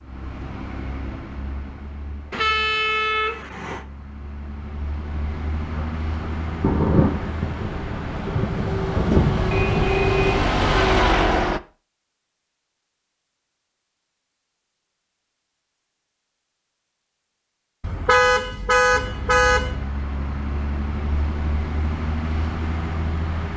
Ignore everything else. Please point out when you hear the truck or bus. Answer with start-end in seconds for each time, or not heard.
0.0-11.6, 18.9-23.5.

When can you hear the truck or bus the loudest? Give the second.
11 s.